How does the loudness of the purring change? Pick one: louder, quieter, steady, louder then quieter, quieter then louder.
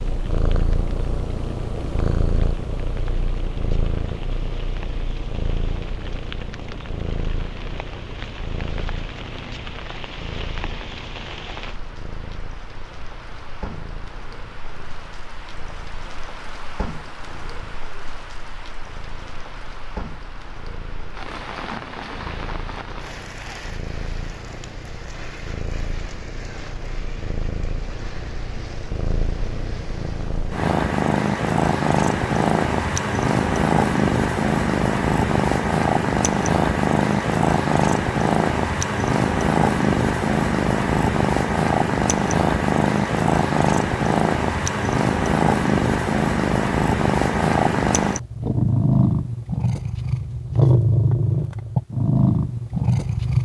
quieter then louder.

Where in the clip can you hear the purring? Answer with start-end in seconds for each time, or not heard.
0.0-53.4.